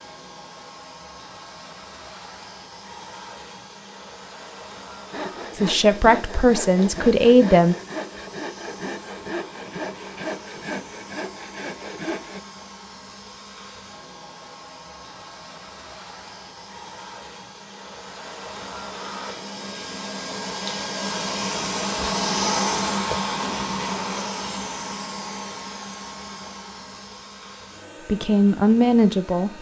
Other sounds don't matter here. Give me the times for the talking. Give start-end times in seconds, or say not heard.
5.5-7.8, 28.1-29.5.